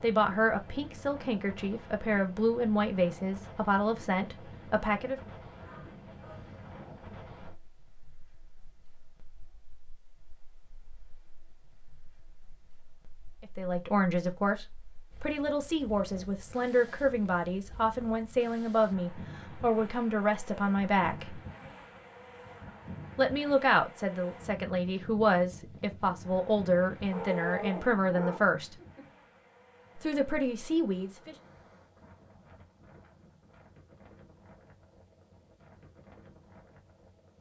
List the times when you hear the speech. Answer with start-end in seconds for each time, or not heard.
0.0-5.2, 13.4-21.4, 23.1-28.8, 29.9-31.4.